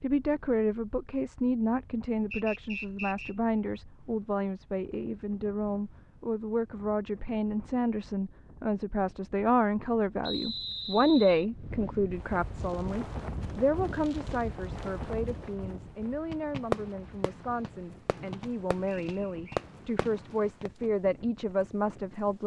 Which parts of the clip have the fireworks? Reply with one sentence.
You can hear the fireworks from 12.6 to 20.7 s.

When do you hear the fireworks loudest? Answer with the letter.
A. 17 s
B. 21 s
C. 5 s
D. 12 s
A.